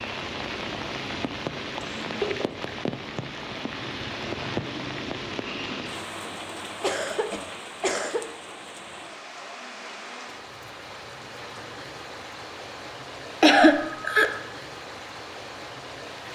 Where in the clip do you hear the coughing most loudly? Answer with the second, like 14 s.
14 s.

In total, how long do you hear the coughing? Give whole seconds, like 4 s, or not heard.
3 s.